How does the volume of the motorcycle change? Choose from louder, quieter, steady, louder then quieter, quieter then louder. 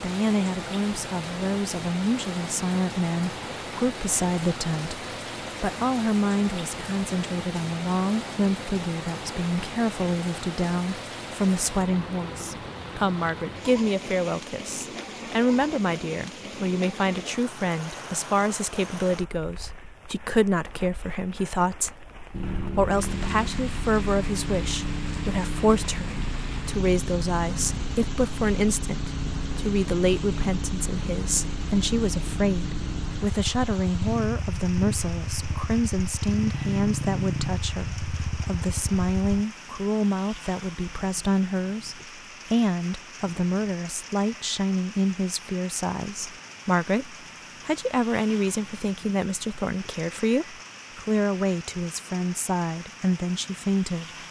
steady.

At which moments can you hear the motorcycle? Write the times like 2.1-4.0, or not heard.
22.3-39.5.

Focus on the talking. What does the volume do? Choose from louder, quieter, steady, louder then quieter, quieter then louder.
steady.